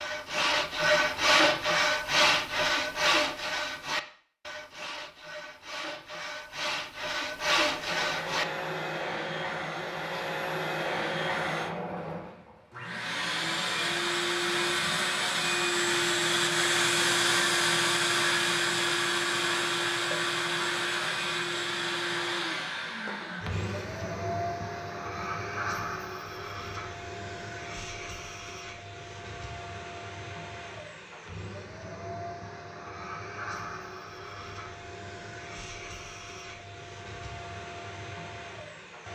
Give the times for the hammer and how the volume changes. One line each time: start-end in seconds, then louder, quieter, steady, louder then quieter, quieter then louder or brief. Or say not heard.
not heard.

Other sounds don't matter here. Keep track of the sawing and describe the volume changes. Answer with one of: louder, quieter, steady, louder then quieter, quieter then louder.
quieter then louder.